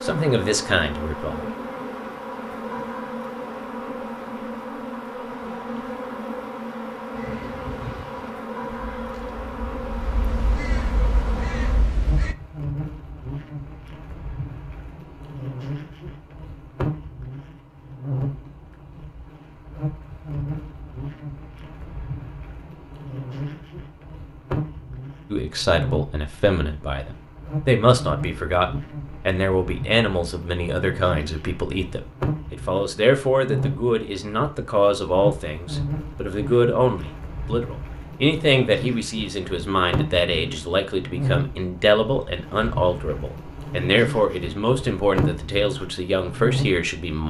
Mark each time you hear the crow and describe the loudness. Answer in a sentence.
You can hear the crow from 7.1 to 12.3 s, getting quieter then louder.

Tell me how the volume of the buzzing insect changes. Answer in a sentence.
The loudness of the buzzing insect stays about the same.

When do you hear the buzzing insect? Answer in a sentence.
The buzzing insect can be heard from 0.0 to 47.2 s.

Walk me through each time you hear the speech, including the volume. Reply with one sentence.
You can hear the speech briefly from 0.0 to 1.4 s; and from 25.3 to 47.2 s, at a steady volume.